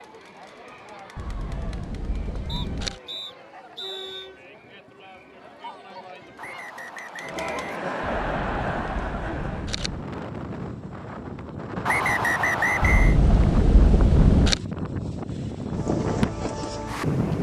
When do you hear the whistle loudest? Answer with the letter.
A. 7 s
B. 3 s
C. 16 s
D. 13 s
D.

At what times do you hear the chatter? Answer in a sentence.
You can hear the chatter from 0.0 to 9.8 s.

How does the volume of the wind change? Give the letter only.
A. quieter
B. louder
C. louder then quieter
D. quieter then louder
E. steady
B.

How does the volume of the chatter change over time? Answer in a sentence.
The volume of the chatter goes up.